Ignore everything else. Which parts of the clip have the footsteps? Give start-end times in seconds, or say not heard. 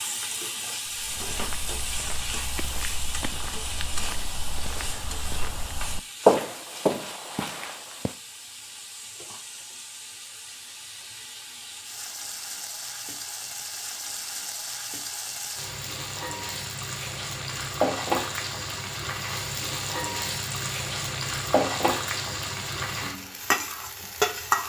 0.8-8.2.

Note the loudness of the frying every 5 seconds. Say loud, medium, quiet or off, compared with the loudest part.
medium, quiet, medium, loud, loud.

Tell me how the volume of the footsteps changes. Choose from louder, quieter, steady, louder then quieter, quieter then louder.
louder then quieter.